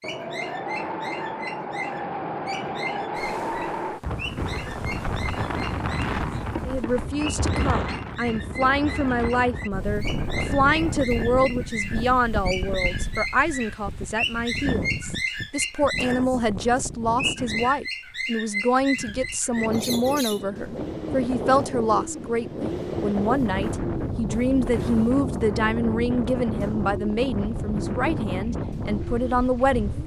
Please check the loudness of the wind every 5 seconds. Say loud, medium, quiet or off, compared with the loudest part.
loud, loud, loud, medium, loud, loud.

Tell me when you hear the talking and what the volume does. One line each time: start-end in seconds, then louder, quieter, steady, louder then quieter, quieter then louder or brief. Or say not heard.
6.7-30.0 steady.